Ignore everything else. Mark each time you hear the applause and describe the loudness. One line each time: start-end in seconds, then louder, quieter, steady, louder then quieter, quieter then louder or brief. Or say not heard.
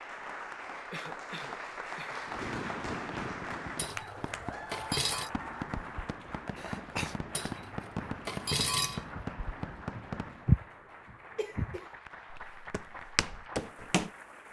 0.0-14.4 quieter.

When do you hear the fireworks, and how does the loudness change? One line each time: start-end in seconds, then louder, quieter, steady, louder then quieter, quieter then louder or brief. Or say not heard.
2.2-10.5 steady.